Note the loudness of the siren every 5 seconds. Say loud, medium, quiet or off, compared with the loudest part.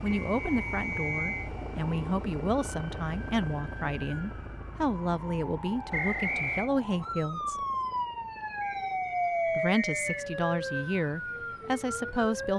quiet, loud, loud.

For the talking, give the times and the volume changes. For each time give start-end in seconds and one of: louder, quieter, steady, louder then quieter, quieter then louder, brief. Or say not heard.
0.0-7.5 steady
9.6-12.5 brief.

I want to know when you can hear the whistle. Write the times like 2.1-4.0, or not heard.
0.1-1.5, 5.9-6.7, 8.6-10.3.